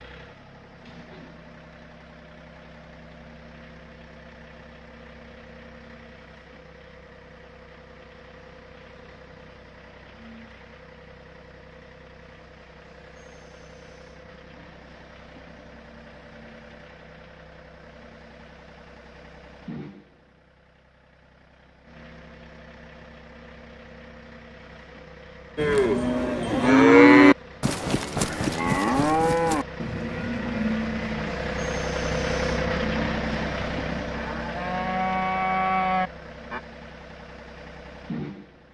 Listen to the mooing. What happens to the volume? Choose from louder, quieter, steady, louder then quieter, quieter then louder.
quieter then louder.